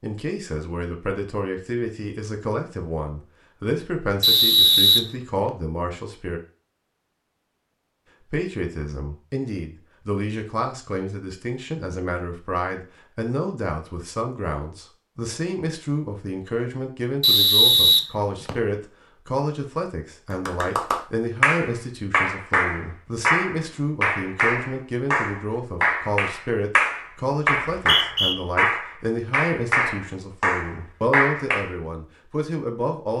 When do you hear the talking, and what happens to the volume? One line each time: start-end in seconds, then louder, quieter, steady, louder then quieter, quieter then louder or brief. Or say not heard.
0.0-6.4 steady
8.3-33.1 steady.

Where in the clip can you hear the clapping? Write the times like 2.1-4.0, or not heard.
20.3-31.7.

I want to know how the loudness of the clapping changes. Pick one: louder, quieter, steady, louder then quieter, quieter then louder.
steady.